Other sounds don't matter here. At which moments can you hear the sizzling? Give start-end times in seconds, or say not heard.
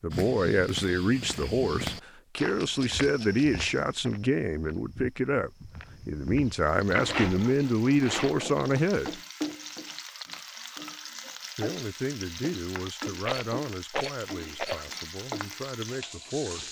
6.6-16.6.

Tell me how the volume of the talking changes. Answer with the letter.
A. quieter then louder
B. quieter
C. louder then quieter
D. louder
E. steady
B.